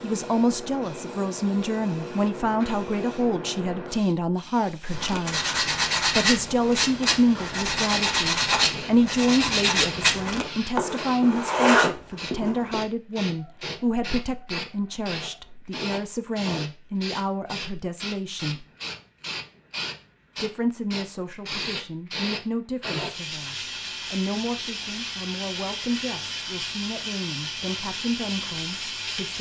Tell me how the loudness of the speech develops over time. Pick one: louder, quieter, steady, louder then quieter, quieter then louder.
quieter.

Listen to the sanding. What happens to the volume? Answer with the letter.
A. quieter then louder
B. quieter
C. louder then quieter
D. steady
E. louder
D.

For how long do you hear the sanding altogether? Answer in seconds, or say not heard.
8 s.